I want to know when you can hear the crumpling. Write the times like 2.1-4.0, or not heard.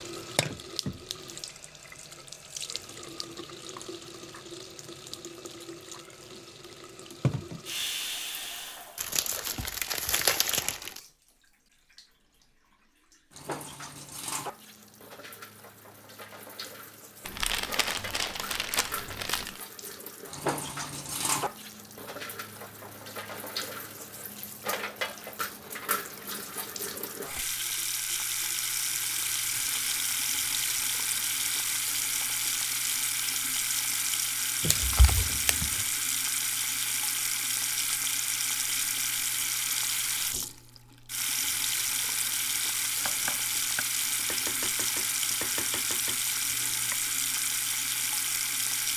8.9-11.0, 17.2-19.6, 34.6-35.9.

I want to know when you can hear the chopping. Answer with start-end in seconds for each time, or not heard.
43.0-47.0.